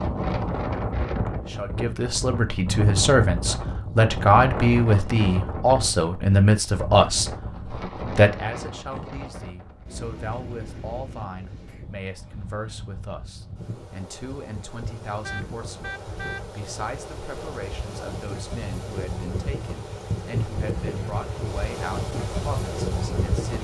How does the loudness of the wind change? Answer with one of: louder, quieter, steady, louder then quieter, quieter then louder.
quieter then louder.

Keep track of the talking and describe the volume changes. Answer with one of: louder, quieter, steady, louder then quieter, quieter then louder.
quieter.